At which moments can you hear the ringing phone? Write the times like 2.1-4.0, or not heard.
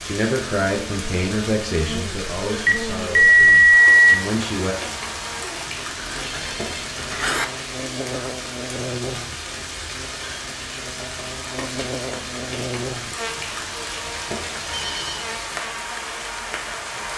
2.6-4.2, 6.0-7.5, 14.7-15.2.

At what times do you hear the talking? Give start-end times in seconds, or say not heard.
0.0-4.8.